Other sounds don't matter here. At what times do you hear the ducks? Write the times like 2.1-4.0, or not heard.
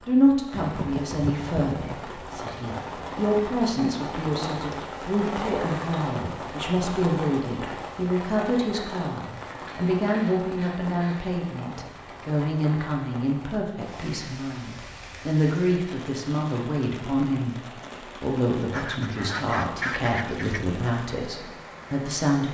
0.6-1.9, 9.6-11.2, 18.7-20.6.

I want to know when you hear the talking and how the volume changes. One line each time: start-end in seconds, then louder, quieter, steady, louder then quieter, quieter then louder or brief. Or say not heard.
0.1-22.4 steady.